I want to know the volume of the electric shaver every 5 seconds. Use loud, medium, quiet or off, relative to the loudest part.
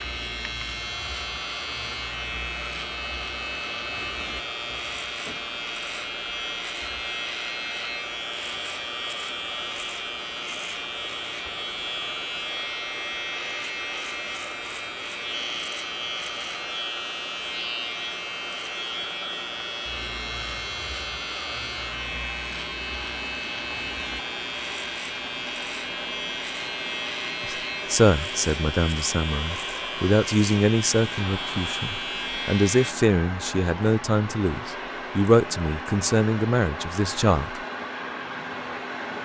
loud, loud, loud, loud, loud, loud, loud, off.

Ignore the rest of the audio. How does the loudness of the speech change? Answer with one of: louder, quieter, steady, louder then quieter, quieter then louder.
steady.